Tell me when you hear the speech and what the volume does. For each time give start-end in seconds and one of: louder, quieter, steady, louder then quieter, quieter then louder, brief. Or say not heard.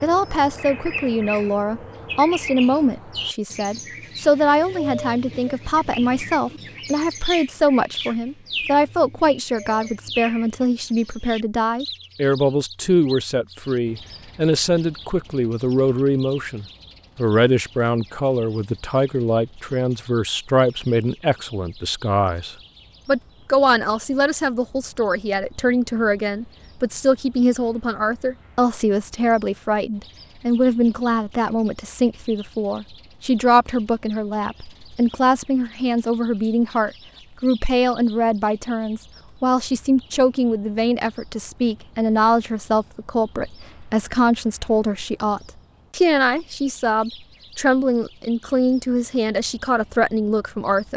0.0-50.9 steady.